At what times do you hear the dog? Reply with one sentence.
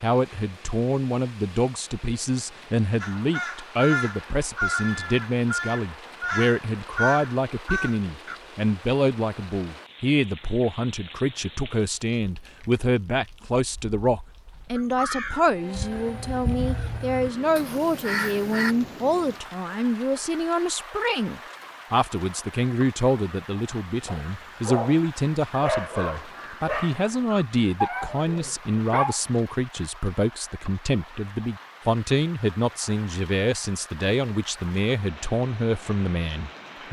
The dog can be heard from 24.1 to 29.2 s.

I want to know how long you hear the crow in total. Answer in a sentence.
The crow can be heard for 9 seconds in total.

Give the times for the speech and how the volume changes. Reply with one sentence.
The speech can be heard from 0.0 to 36.8 s, at a steady volume.